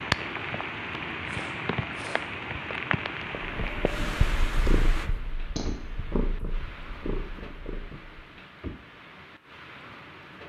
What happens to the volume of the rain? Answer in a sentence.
The loudness of the rain goes down.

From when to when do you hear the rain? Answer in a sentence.
The rain can be heard from 0.0 to 10.4 s.